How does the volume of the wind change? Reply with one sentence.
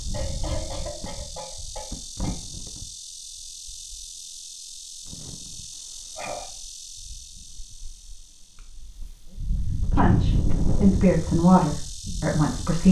The volume of the wind goes down, then up.